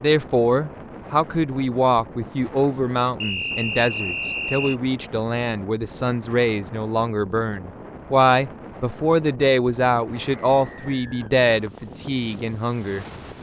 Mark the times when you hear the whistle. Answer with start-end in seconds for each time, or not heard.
3.2-4.8, 10.3-11.3.